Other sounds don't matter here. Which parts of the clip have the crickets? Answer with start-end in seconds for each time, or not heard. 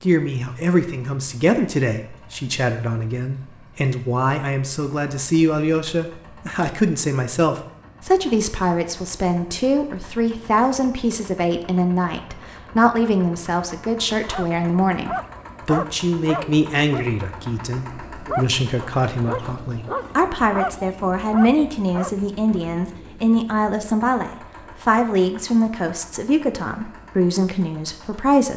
not heard.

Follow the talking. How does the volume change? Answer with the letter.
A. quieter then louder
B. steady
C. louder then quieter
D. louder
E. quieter
B.